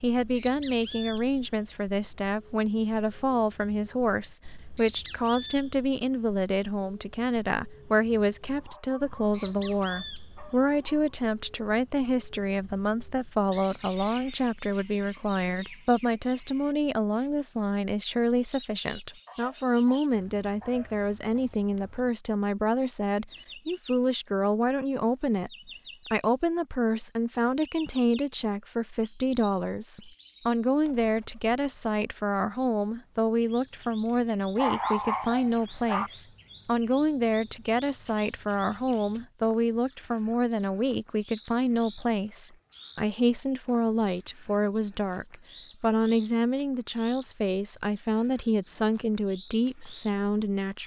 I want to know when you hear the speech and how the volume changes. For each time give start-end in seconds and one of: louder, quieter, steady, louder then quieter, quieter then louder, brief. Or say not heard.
0.0-25.5 steady
26.1-50.8 steady.